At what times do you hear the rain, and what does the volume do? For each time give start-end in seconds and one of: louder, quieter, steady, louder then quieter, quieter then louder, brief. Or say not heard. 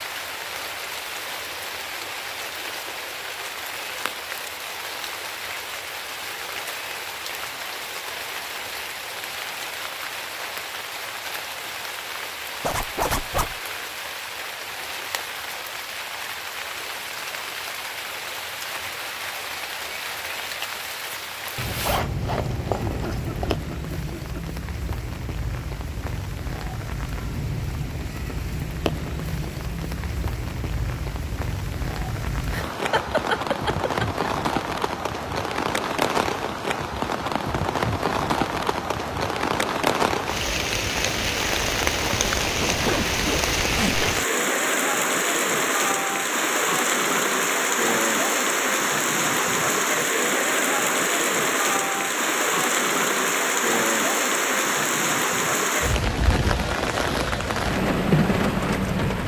0.0-59.2 louder.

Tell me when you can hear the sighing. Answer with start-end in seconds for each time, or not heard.
not heard.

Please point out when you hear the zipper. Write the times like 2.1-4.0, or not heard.
12.6-13.6, 21.6-23.6, 42.5-44.1.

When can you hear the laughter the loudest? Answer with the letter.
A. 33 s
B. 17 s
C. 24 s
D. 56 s
A.